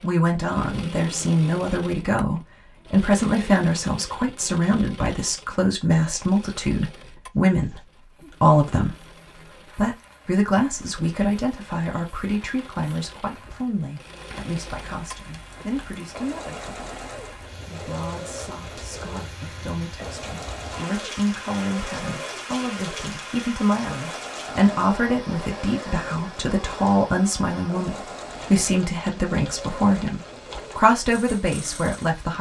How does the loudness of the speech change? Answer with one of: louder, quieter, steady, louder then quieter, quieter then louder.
quieter then louder.